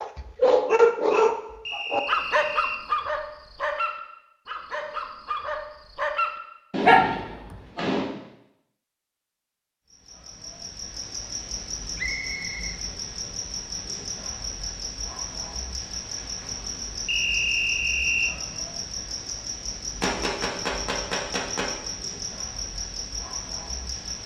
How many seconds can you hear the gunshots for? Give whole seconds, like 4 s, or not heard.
3 s.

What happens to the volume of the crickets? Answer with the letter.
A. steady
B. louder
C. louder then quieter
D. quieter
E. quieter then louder
A.